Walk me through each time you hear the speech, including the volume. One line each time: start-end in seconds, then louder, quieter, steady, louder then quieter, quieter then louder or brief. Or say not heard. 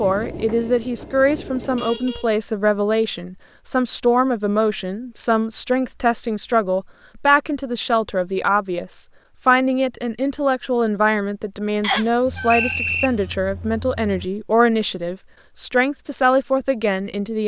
0.0-17.4 steady.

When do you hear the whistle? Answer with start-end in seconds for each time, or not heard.
11.8-13.1.